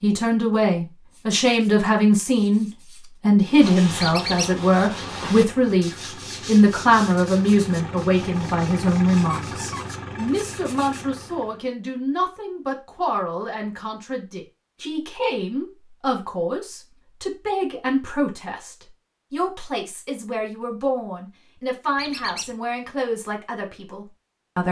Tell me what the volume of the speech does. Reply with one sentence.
The loudness of the speech goes down.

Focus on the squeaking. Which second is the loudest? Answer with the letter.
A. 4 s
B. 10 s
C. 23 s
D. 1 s
A.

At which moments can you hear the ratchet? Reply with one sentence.
The ratchet can't be heard in this clip.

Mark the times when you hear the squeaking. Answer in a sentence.
You can hear the squeaking from 4.0 to 4.5 s, from 9.2 to 10.3 s and from 21.9 to 22.6 s.